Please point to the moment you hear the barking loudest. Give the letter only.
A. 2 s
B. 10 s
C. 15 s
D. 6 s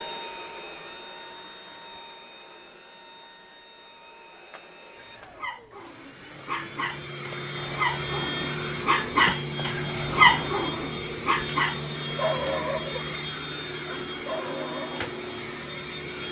B.